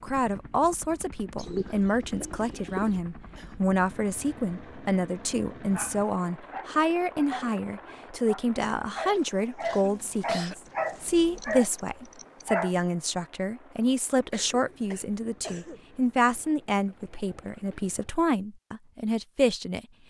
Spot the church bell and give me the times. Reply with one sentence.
The church bell can't be heard in this clip.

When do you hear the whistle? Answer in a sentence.
The whistle can't be heard in this clip.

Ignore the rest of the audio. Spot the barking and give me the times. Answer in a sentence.
The barking can be heard from 5.7 to 12.8 s.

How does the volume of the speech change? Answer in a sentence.
The volume of the speech stays about the same.